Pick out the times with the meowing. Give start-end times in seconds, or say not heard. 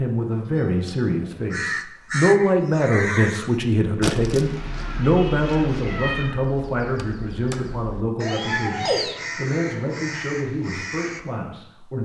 0.3-1.8, 4.3-6.3, 8.2-9.2.